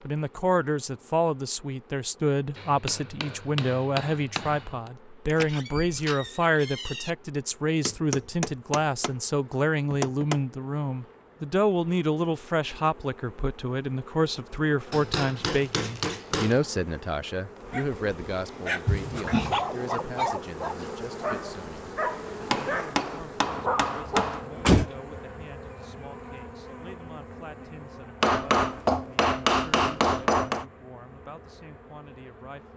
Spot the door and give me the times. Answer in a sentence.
You can hear the door from 5.2 to 7.1 s, from 18.9 to 19.6 s and from 24.1 to 24.9 s.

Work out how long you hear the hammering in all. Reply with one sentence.
You can hear the hammering for 10 seconds altogether.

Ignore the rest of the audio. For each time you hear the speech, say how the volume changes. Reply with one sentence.
The speech can be heard from 0.1 to 32.7 s, getting quieter.